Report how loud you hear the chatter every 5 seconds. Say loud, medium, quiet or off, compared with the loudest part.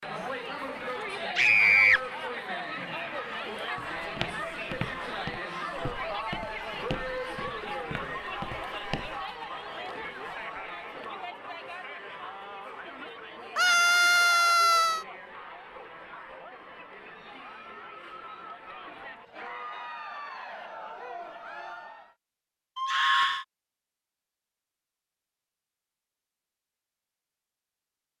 loud, loud, medium, medium, medium, off.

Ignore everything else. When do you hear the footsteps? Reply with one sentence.
The footsteps can be heard from 3.8 to 9.2 s.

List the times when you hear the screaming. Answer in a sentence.
You can hear the screaming from 1.4 to 2.0 s, from 13.6 to 15.1 s and from 22.8 to 23.4 s.